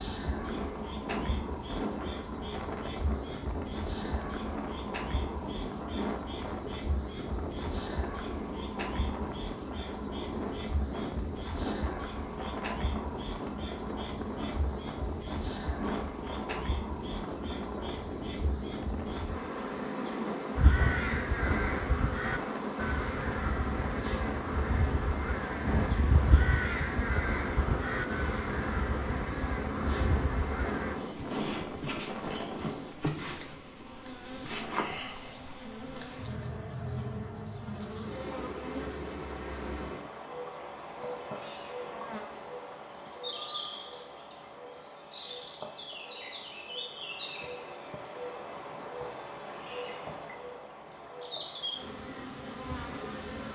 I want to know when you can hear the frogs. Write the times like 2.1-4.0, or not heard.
not heard.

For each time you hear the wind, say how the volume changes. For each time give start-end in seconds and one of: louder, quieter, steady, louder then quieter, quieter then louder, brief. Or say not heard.
0.0-33.0 steady.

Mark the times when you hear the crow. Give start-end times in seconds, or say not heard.
20.6-30.9.